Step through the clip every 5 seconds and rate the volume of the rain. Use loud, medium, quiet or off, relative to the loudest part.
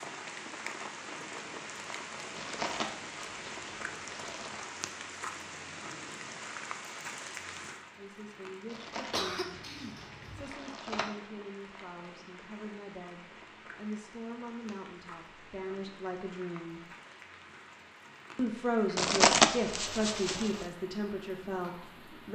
loud, loud, medium, medium, medium.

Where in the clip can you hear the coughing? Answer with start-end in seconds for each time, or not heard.
9.1-10.5.